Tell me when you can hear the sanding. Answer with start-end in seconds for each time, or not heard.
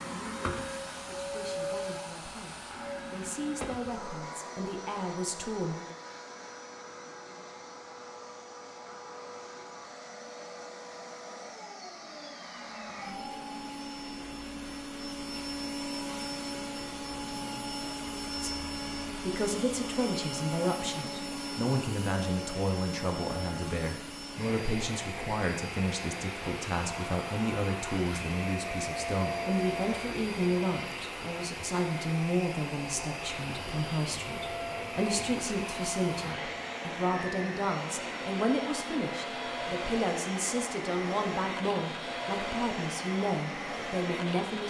not heard.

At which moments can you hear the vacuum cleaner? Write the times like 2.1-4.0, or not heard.
0.0-44.6.